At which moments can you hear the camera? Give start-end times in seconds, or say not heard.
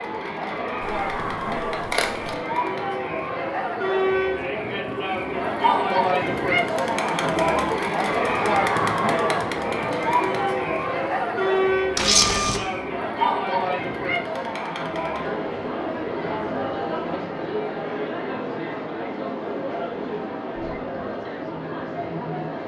0.8-2.4, 11.9-12.6.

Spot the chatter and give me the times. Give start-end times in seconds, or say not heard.
0.0-22.6.